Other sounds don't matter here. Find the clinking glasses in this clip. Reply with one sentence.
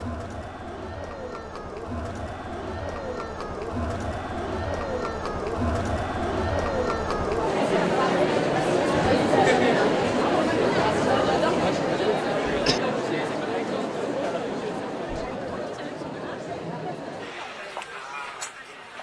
The clinking glasses can't be heard in this clip.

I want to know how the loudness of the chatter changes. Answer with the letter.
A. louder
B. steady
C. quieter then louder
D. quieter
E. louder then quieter
E.